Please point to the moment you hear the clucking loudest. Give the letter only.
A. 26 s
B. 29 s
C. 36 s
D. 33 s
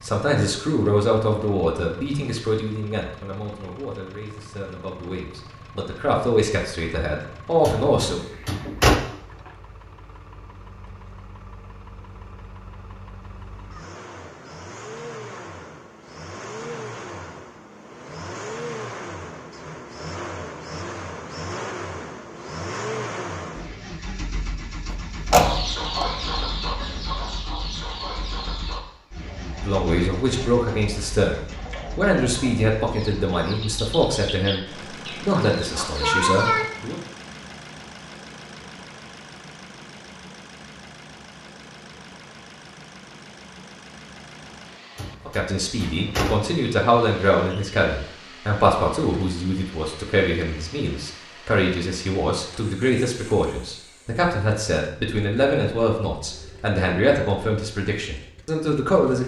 C.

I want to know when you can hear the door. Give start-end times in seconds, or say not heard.
7.7-9.0, 25.3-26.1, 45.0-46.5.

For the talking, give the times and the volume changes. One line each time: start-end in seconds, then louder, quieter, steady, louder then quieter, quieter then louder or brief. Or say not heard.
0.0-8.2 quieter then louder
29.6-37.0 steady
45.2-59.2 steady.